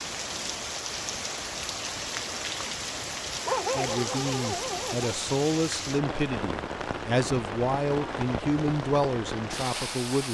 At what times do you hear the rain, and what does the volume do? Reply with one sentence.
You can hear the rain from 0.0 to 10.2 s, at a steady volume.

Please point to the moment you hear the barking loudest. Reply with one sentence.
The volume of the barking peaks at 4 seconds.